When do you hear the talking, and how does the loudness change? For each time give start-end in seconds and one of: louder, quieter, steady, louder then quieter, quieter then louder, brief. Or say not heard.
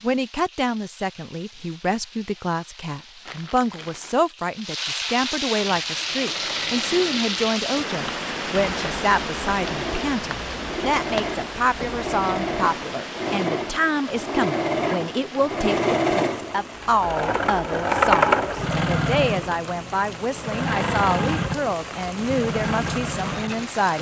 0.0-23.9 steady.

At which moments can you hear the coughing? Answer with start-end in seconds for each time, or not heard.
not heard.